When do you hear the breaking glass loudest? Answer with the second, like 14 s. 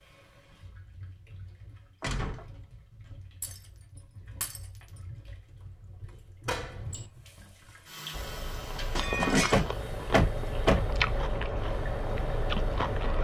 9 s.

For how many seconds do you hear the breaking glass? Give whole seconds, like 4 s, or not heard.
2 s.